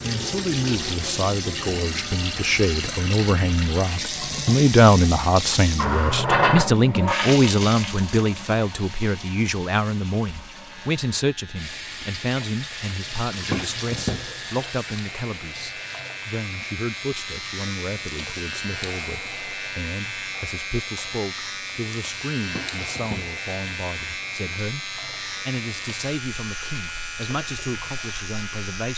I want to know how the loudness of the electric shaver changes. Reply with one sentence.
The volume of the electric shaver goes up.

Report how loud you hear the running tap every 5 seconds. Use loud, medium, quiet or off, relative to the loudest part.
loud, loud, medium, quiet, quiet, quiet.